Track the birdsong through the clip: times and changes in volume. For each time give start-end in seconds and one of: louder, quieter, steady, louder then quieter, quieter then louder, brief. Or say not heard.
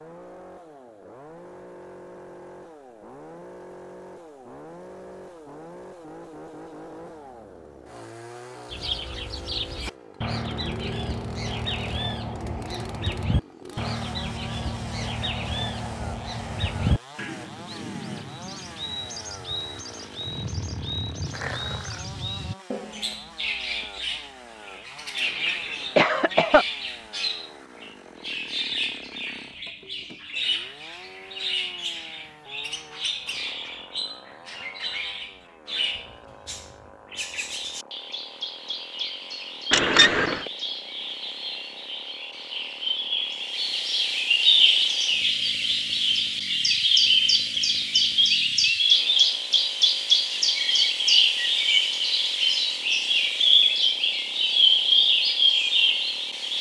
8.7-56.5 louder.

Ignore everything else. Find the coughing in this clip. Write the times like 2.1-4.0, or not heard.
25.2-26.6, 39.7-40.5.